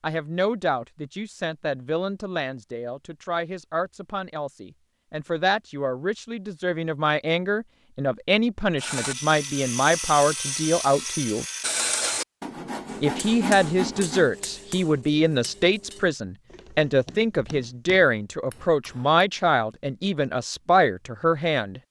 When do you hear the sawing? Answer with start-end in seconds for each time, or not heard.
8.8-14.3.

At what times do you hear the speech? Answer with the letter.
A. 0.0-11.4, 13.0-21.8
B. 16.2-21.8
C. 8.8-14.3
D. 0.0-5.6
A.